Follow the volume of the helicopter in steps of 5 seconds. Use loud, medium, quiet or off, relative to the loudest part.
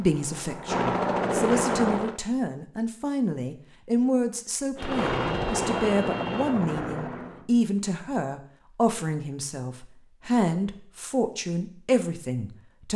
loud, loud, off.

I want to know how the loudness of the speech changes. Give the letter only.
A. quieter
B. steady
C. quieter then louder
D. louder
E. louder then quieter
B.